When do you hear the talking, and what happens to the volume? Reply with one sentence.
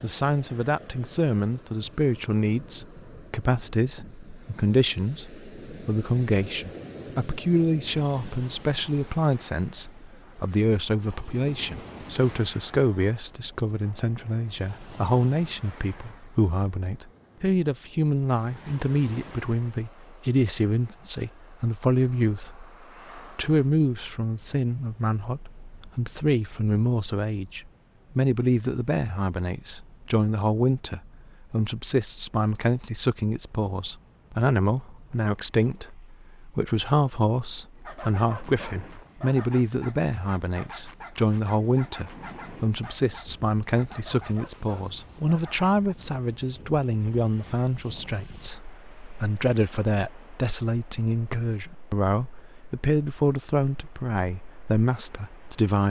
The talking can be heard from 0.0 to 55.8 s, at a steady volume.